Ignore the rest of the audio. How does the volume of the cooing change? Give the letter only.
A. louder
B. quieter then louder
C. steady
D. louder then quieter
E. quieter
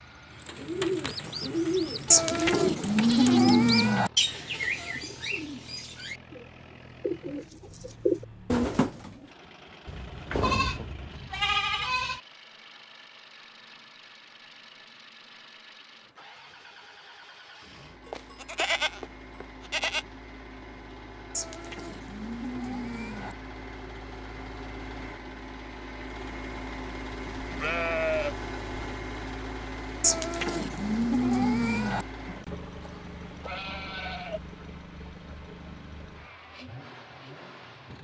B.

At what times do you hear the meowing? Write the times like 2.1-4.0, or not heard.
2.1-4.1, 21.3-23.4, 30.0-32.0.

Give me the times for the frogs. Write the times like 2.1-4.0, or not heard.
not heard.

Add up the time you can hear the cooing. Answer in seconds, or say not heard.
9 s.